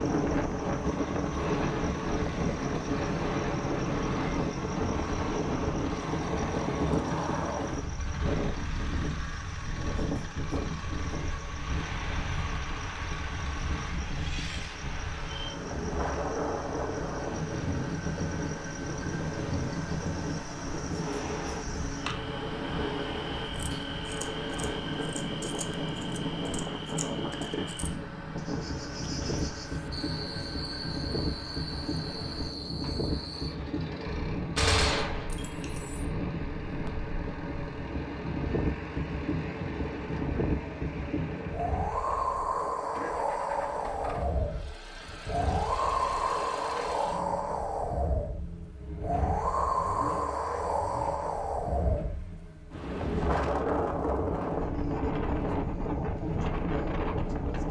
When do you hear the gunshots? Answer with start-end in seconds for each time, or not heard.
34.5-36.0.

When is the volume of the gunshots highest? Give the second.
35 s.